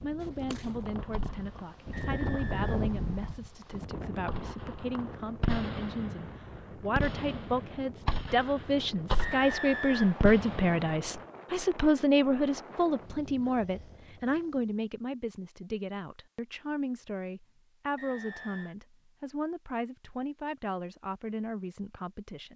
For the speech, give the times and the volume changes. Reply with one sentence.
You can hear the speech from 0.0 to 22.5 s, getting louder then quieter.